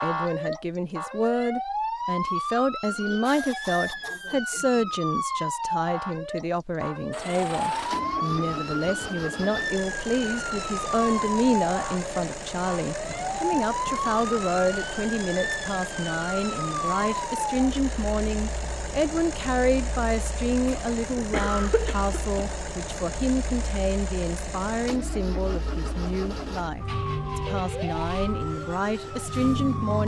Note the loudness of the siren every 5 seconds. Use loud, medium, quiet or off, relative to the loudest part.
loud, loud, loud, loud, quiet, loud.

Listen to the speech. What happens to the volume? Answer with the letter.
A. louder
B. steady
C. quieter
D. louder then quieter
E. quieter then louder
B.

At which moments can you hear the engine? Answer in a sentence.
The engine can be heard from 7.1 to 29.9 s.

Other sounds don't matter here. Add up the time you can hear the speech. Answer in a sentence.
The speech can be heard for 30 seconds in total.